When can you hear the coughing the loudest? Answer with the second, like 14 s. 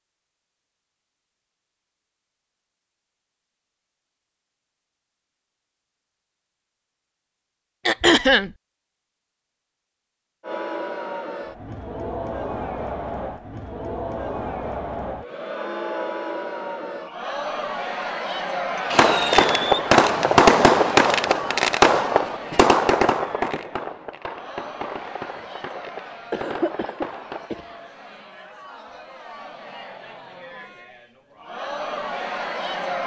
8 s.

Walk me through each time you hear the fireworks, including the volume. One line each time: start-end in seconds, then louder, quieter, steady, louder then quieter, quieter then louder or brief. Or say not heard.
18.9-27.5 quieter.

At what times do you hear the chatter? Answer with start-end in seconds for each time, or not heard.
10.4-33.0.